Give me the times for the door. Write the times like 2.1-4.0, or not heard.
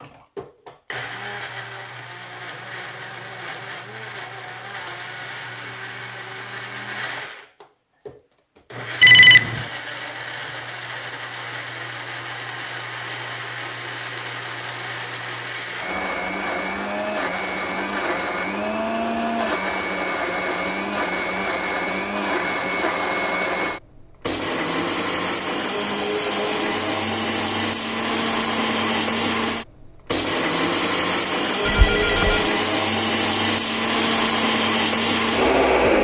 not heard.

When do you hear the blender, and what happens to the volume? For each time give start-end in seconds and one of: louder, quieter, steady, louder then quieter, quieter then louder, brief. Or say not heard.
0.0-35.9 louder.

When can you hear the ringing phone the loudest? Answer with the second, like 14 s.
9 s.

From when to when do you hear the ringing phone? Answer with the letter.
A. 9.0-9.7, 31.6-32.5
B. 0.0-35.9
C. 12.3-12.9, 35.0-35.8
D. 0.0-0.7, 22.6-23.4
A.